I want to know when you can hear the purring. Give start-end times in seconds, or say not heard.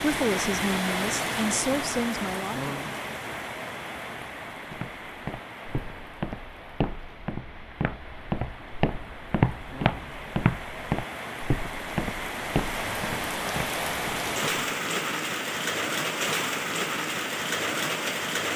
not heard.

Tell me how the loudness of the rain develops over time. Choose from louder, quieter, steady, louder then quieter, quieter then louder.
quieter then louder.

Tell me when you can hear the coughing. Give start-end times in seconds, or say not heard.
not heard.